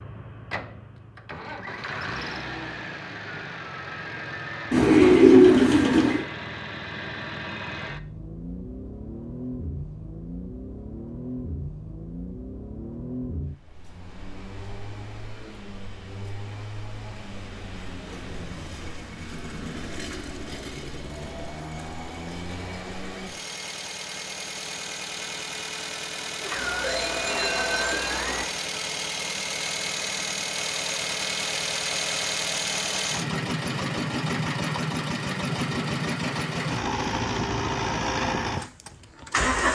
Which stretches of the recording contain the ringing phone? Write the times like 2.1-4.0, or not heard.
26.4-28.4.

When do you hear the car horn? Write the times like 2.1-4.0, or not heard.
not heard.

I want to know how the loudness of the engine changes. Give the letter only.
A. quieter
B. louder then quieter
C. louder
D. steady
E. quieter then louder
C.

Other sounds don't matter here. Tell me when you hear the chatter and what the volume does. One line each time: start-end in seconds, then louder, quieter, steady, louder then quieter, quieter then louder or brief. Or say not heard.
not heard.